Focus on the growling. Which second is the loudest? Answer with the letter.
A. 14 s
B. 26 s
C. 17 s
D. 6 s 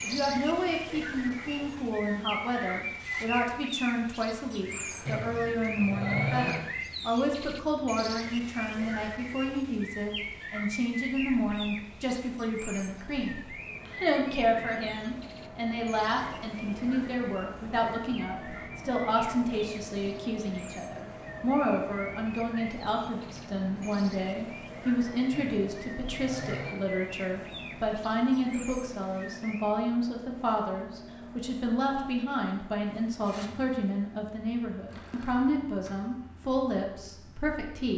D.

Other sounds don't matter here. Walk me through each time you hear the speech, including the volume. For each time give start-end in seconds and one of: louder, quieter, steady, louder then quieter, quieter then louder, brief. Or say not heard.
0.0-37.9 steady.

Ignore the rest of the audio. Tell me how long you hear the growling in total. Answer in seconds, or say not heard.
3 s.